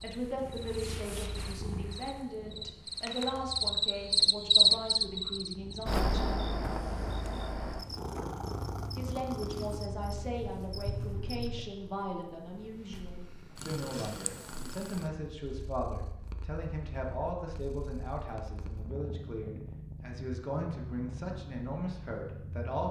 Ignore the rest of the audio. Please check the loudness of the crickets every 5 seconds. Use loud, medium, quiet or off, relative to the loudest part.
loud, medium, quiet, off, off.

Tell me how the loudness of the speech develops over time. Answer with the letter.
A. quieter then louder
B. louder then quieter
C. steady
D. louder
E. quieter
C.